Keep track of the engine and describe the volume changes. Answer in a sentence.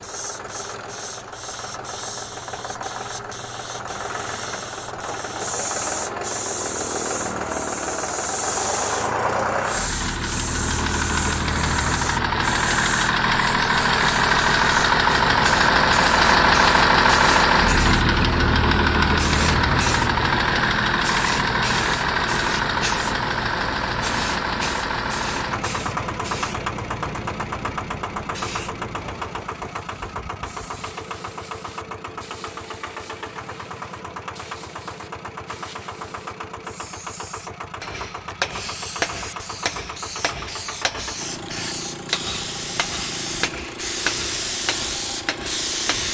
The loudness of the engine goes up, then down.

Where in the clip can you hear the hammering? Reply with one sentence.
The hammering can be heard from 37.8 to 46.0 s.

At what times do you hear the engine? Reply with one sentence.
You can hear the engine from 0.0 to 46.0 s.